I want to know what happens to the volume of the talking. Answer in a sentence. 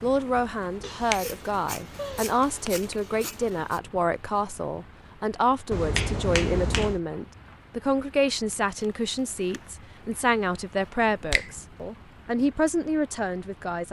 The loudness of the talking stays about the same.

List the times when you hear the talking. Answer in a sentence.
The talking can be heard from 0.0 to 13.8 s.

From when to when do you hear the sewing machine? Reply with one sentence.
You can't hear the sewing machine here.